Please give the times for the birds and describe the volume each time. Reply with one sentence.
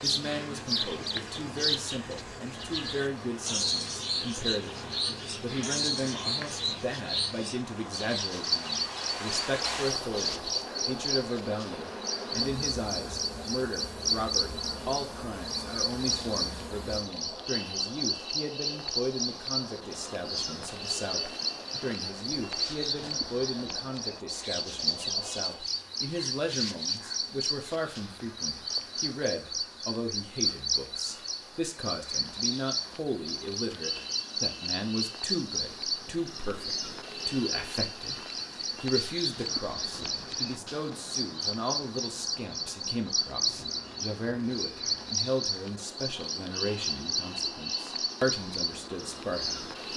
You can hear the birds from 0.0 to 49.9 s, at a steady volume.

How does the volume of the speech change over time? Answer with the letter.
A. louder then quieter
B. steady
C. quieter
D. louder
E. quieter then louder
B.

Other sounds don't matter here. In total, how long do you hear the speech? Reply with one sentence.
The speech can be heard for 50 seconds in total.